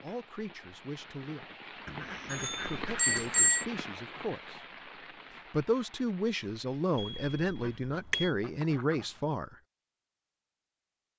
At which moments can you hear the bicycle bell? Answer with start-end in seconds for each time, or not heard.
2.3-3.6, 7.0-8.3.